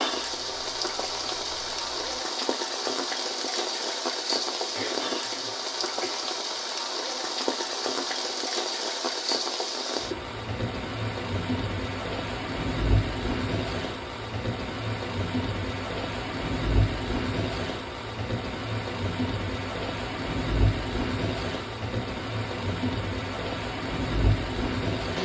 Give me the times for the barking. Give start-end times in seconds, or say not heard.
not heard.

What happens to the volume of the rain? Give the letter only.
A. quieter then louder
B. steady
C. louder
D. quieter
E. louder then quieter
B.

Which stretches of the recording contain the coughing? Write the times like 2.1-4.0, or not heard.
4.7-6.2.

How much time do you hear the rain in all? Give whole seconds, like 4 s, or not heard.
25 s.